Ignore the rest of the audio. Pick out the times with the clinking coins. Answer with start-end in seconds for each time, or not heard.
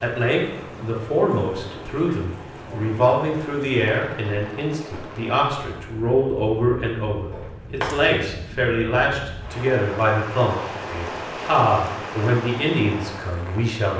7.3-8.0.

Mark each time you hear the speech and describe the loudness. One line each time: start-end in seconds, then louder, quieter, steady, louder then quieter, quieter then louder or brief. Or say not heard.
0.0-13.9 steady.